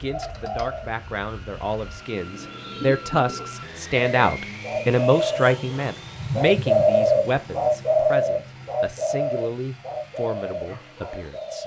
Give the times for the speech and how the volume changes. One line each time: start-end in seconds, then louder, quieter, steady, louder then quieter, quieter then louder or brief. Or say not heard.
0.0-11.6 louder then quieter.